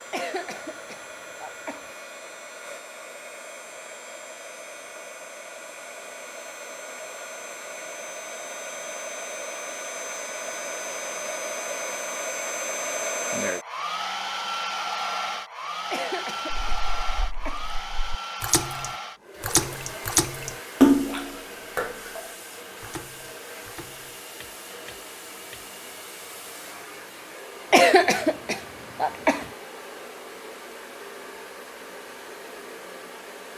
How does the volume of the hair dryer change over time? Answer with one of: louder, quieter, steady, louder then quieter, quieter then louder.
louder then quieter.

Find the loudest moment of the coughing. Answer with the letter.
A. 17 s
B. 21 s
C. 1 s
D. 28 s
D.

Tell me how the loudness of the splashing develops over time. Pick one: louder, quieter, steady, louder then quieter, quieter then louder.
louder then quieter.